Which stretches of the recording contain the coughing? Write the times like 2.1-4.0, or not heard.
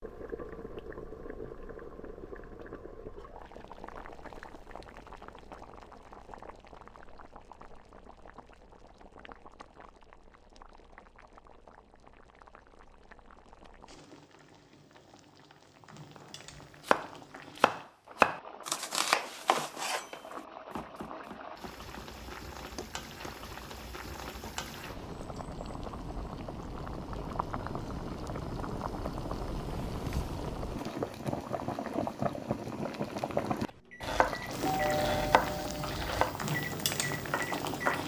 not heard.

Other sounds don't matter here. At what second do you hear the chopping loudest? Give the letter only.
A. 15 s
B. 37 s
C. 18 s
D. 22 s
C.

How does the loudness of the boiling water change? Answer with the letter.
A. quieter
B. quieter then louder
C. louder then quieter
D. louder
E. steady
B.